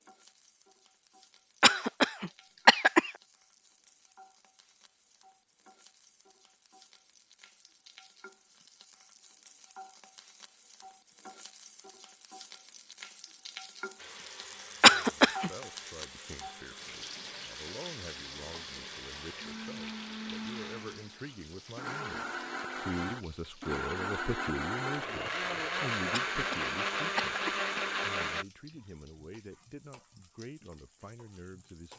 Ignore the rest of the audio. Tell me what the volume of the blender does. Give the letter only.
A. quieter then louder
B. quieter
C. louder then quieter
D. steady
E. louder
E.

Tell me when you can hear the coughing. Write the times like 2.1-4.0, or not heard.
1.6-3.1, 14.8-15.5, 26.1-27.8.